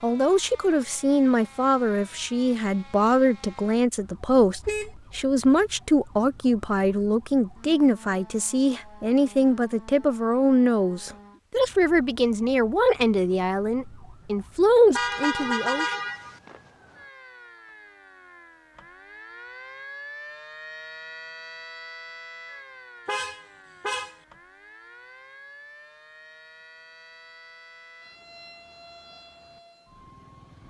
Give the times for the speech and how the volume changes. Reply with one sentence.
The speech can be heard from 0.0 to 15.9 s, at a steady volume.